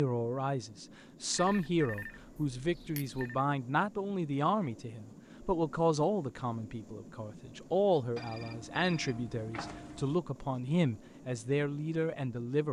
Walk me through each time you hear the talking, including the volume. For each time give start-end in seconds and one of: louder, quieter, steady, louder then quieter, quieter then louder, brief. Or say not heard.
0.0-12.6 steady.